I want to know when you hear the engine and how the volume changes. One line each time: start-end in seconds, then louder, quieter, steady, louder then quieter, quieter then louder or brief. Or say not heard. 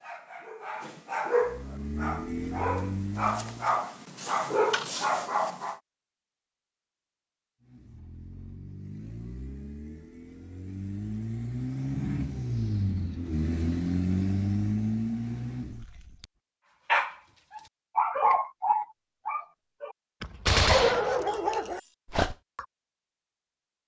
1.4-3.9 brief
7.6-16.3 louder.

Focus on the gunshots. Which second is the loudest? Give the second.
21 s.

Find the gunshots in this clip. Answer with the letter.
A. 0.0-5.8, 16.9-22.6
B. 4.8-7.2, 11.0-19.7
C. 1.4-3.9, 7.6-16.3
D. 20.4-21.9
D.